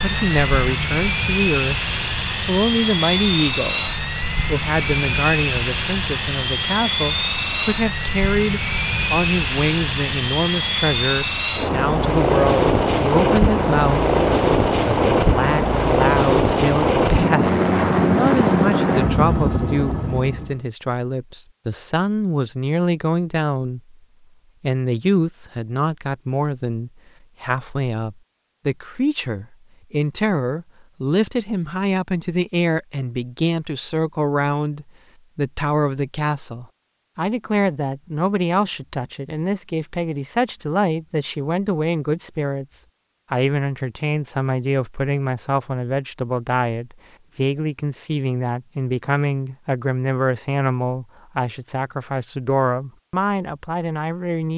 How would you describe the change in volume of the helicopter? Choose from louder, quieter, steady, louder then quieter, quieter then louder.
steady.